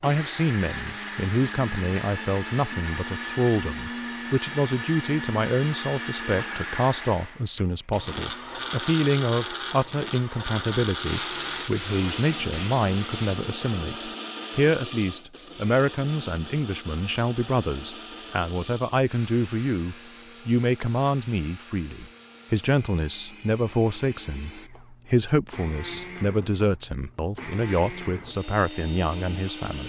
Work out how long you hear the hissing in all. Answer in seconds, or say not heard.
2 s.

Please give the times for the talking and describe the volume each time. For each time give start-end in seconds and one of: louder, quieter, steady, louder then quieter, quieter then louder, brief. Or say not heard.
0.0-29.8 steady.